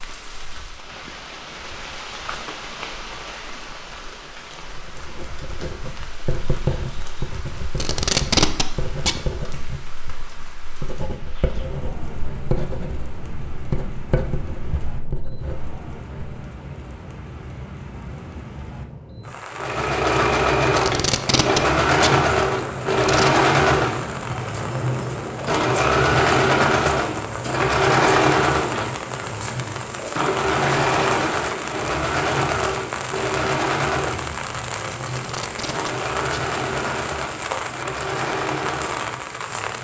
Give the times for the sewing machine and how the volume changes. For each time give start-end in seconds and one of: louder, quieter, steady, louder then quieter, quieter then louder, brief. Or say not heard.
19.5-39.7 quieter.